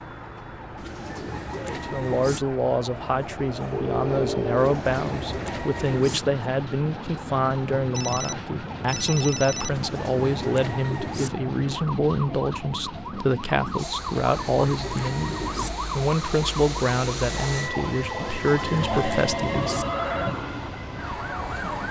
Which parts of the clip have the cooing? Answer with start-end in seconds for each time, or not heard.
0.8-2.4, 4.5-6.2, 9.7-11.3, 14.2-15.7, 18.2-19.9.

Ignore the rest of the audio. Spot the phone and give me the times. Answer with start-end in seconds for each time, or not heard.
3.7-4.7, 7.9-9.7, 18.7-20.4.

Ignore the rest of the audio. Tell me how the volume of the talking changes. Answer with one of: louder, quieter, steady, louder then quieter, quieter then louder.
steady.